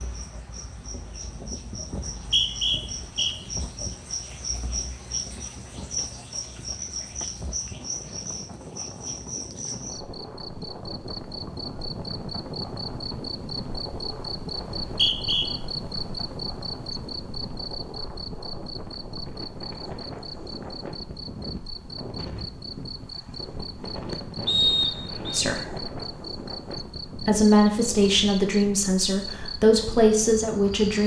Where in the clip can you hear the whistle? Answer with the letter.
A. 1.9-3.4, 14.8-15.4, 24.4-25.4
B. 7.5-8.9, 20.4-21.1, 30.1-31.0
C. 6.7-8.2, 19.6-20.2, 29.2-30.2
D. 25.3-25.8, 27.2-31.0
A.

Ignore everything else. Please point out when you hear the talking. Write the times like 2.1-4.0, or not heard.
25.3-25.8, 27.2-31.0.